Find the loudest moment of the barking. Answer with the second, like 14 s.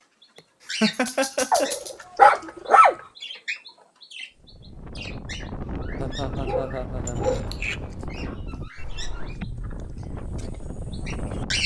2 s.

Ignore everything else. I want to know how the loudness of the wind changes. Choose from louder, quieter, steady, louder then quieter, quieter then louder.
steady.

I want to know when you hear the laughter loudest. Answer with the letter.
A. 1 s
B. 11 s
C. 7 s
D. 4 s
A.